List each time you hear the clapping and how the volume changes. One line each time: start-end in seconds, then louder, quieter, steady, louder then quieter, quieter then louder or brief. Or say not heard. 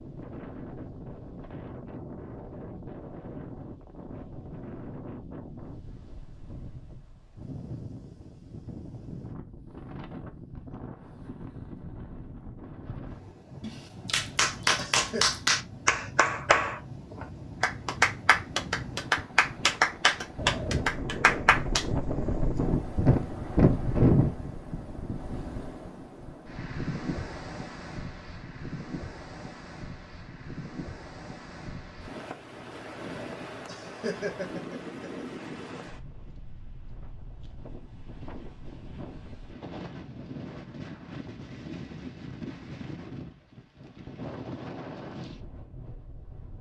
13.6-21.9 steady.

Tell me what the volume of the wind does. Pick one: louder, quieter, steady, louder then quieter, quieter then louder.
louder then quieter.